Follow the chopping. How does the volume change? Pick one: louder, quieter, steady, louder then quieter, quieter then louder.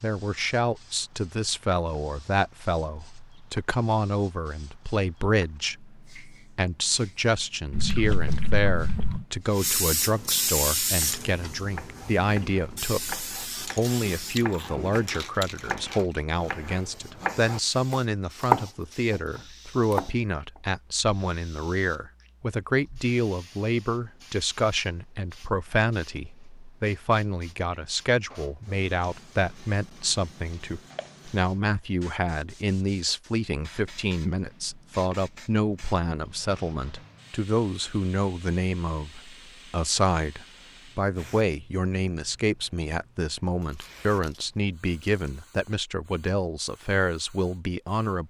louder.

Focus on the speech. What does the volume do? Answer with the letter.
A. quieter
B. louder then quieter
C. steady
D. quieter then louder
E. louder
C.